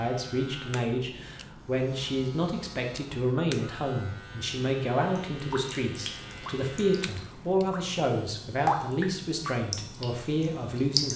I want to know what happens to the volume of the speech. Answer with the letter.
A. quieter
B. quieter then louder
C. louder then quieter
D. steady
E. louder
D.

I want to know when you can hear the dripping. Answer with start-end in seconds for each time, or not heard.
5.3-7.8, 8.7-11.1.